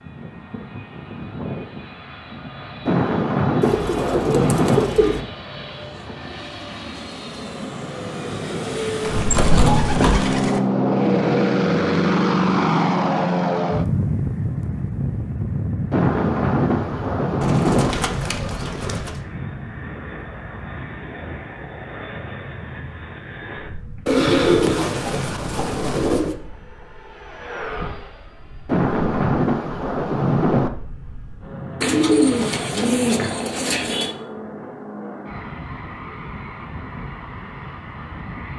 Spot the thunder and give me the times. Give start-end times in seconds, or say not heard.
2.9-4.8, 15.9-17.9, 28.6-30.7.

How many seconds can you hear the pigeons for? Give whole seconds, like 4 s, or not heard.
10 s.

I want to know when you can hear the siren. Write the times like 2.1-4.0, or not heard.
not heard.